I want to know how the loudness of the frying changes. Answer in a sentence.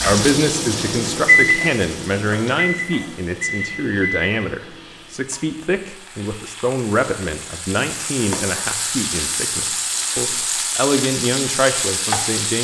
The loudness of the frying goes down, then up.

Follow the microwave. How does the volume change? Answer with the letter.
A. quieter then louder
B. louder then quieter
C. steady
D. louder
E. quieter
B.